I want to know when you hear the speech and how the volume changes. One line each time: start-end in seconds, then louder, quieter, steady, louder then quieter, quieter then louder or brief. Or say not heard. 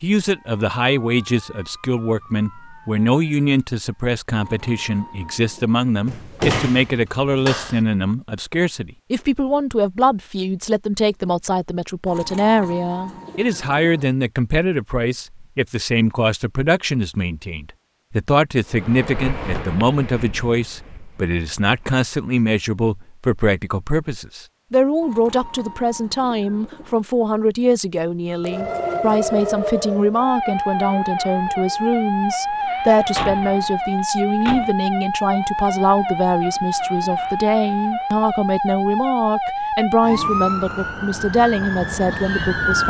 0.0-42.8 steady.